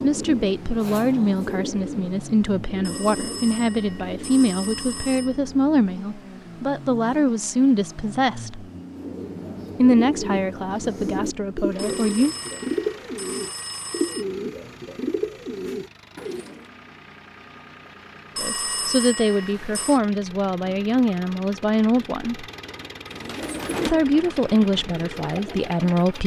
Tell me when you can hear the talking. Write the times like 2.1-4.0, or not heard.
0.0-8.7, 9.8-12.3, 18.4-22.4, 23.9-26.2.